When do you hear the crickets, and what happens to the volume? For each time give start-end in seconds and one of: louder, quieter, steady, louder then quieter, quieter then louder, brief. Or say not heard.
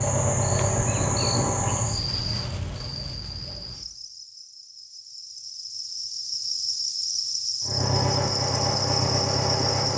0.0-9.9 quieter then louder.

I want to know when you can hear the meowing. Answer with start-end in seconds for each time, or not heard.
not heard.